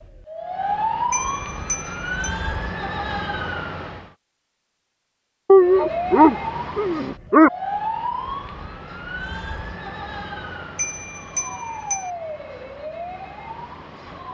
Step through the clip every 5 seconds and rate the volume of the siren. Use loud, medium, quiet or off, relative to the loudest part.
loud, loud, medium.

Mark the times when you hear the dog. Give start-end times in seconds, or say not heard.
5.5-7.5.